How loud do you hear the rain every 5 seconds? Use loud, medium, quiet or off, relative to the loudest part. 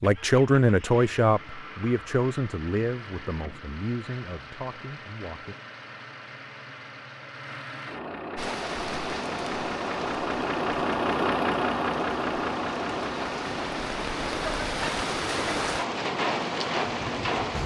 off, medium, medium, loud.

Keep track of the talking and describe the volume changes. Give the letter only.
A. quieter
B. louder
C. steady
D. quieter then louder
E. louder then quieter
A.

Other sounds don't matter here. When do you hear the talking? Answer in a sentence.
The talking can be heard from 0.0 to 5.5 s.